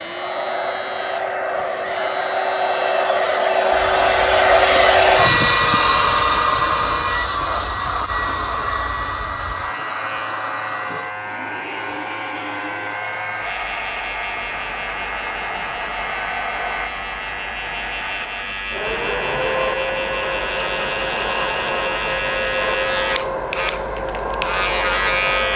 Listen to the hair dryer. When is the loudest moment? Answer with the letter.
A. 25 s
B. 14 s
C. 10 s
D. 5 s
D.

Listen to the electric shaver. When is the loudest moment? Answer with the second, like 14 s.
25 s.